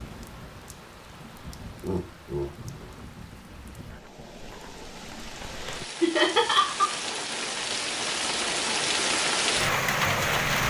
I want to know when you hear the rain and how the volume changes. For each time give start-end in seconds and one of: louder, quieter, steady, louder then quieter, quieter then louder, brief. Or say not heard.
0.0-10.6 louder.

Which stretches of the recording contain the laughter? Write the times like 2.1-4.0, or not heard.
1.8-2.9, 6.0-6.9.